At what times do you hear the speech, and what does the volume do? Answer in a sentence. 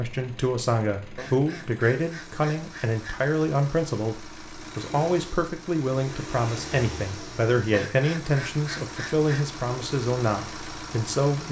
The speech can be heard from 0.0 to 11.4 s, at a steady volume.